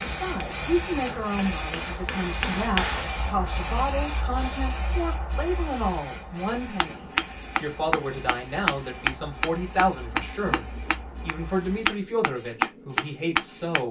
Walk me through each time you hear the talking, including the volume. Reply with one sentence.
The talking can be heard from 0.1 to 13.8 s, at a steady volume.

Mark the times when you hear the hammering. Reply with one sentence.
The hammering can be heard from 0.0 to 3.1 s and from 6.8 to 13.8 s.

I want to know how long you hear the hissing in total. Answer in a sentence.
You can hear the hissing for 14 seconds altogether.